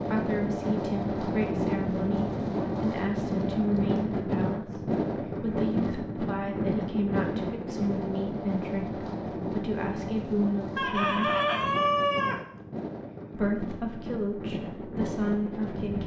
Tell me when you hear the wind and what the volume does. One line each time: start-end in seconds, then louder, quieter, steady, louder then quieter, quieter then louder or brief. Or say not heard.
0.0-16.0 quieter.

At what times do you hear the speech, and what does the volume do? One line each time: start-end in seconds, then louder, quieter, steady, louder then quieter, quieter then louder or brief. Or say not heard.
0.0-11.3 steady
13.3-16.0 brief.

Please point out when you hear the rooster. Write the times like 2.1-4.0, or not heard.
10.8-12.4.